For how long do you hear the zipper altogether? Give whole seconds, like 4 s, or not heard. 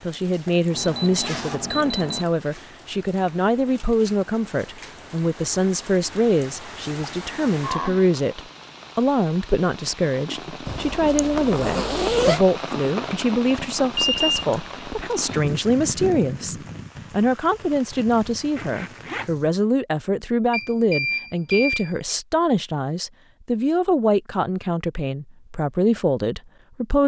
4 s.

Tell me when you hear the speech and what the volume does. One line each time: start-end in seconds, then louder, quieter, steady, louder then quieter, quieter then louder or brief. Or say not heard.
0.0-27.0 steady.